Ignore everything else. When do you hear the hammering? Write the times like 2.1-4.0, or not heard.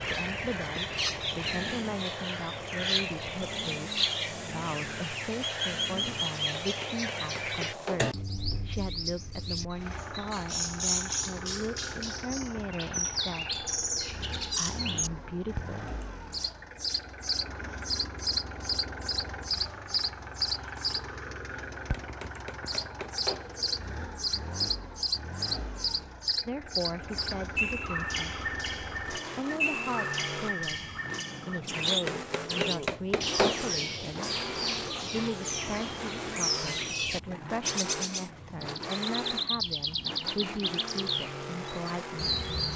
6.6-8.1, 21.9-23.5, 32.0-33.6.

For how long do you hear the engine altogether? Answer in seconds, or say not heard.
43 s.